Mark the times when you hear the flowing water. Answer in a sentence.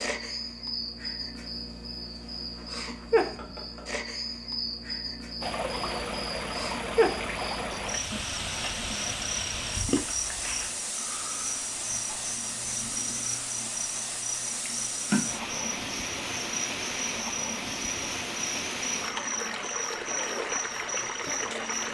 The flowing water can be heard from 5.4 to 21.8 s.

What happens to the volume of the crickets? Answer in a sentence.
The volume of the crickets stays about the same.